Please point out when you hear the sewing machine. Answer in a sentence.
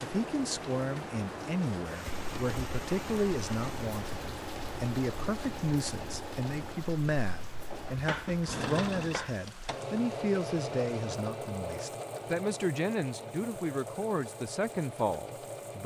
The sewing machine can be heard from 2.1 to 15.8 s.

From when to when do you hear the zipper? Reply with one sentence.
The zipper can't be heard in this clip.